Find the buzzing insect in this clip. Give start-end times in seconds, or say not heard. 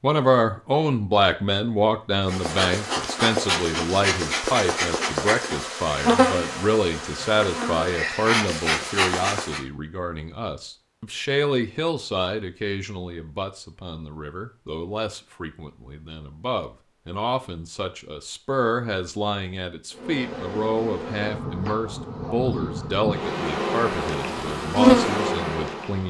2.2-9.6, 19.9-26.0.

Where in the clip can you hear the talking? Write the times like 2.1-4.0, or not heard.
0.0-26.0.